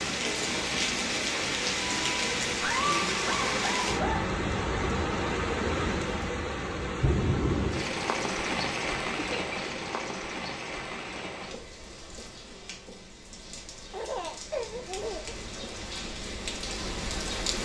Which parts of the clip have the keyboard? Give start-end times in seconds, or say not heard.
not heard.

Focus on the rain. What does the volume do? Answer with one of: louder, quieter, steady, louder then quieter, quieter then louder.
quieter.